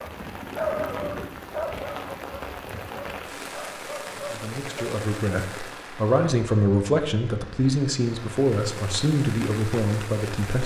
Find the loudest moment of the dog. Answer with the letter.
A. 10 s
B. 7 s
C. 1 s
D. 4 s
C.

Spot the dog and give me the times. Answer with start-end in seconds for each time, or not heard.
0.0-4.8.